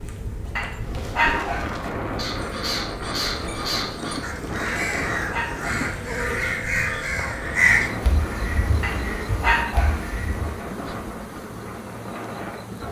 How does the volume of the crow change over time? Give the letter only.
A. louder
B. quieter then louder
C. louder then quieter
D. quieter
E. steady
C.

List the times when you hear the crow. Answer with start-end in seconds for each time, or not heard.
0.7-10.6.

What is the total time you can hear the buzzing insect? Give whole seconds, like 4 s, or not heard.
13 s.